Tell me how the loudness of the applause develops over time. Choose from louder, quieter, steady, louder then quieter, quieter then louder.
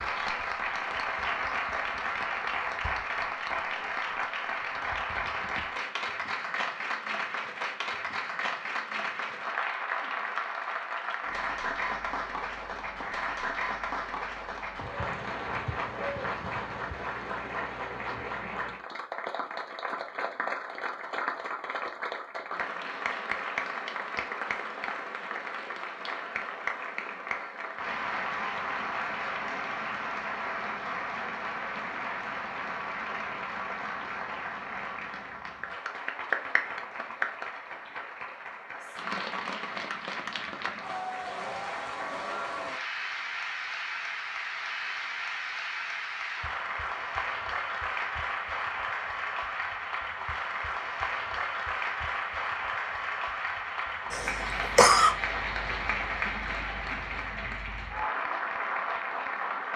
steady.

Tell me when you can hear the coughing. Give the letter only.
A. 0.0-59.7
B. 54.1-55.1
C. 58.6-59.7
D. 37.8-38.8
B.